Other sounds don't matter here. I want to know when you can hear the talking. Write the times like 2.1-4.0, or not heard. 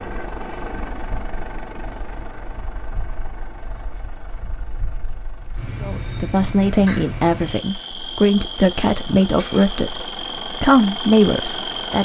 5.8-12.0.